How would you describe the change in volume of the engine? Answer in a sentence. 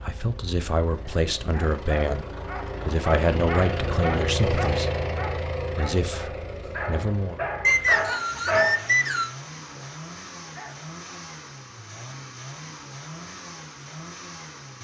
The loudness of the engine goes up, then down.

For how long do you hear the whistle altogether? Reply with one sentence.
You can hear the whistle for 2 seconds altogether.